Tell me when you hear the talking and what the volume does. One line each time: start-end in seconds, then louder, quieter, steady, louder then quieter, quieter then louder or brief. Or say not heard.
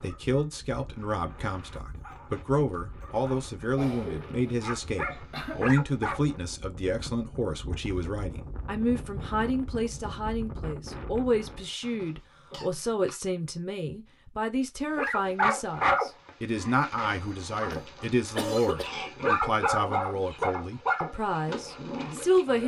0.0-22.6 steady.